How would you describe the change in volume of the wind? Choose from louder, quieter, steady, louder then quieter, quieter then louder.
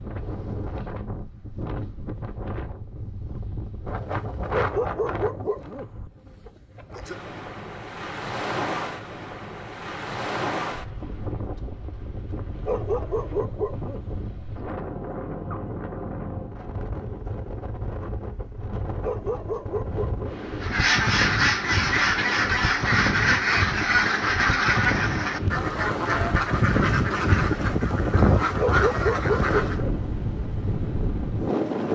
louder.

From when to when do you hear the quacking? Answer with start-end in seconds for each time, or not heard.
20.6-29.9.